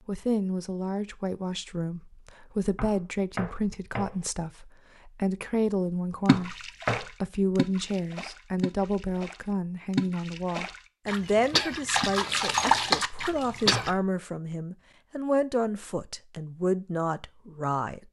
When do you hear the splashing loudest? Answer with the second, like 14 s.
13 s.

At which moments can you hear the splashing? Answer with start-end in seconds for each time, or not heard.
6.2-13.9.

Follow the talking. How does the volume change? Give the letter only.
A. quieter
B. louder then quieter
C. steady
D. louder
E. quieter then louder
C.